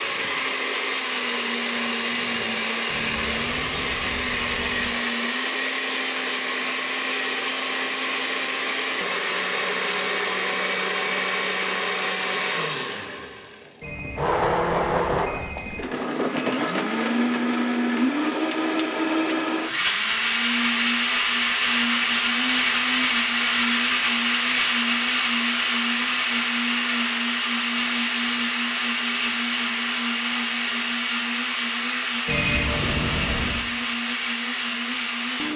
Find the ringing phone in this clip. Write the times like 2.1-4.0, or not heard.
2.9-4.9, 13.8-15.8, 32.2-33.6.